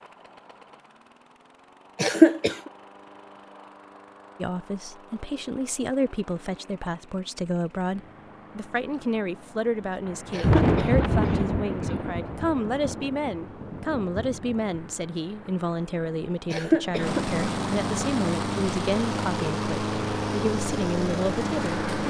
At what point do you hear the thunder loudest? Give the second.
11 s.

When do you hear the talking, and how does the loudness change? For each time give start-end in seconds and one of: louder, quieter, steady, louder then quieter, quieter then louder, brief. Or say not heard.
4.3-22.0 steady.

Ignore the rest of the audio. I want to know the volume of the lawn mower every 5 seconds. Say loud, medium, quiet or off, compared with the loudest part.
quiet, quiet, quiet, loud, loud.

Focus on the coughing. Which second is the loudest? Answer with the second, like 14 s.
2 s.